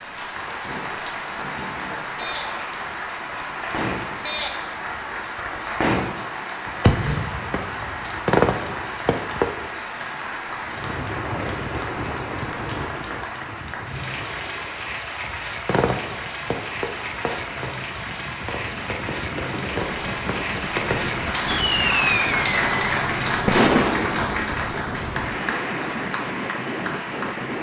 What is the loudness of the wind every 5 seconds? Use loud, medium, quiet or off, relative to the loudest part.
off, off, loud, medium, loud, loud.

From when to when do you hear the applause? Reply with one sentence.
The applause can be heard from 0.0 to 27.5 s.